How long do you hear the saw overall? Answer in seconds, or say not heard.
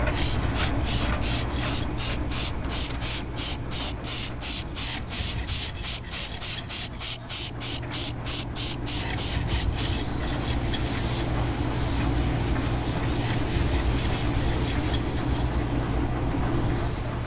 9 s.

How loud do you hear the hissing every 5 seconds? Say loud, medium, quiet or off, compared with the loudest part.
loud, loud, loud, medium.